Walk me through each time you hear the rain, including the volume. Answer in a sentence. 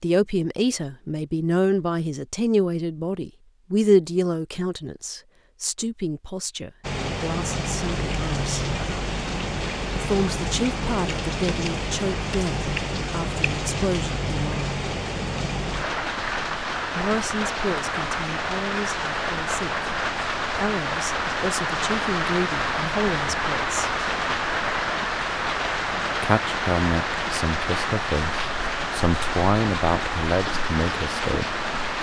You can hear the rain from 6.8 to 31.9 s, at a steady volume.